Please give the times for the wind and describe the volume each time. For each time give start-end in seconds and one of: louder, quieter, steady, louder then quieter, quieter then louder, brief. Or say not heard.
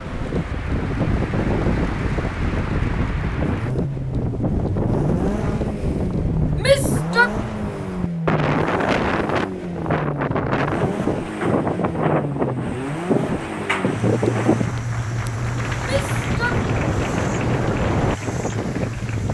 0.0-19.3 steady.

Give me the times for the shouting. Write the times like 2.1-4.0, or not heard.
6.5-7.3, 15.8-16.6.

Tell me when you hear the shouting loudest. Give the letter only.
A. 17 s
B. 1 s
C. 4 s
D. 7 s
D.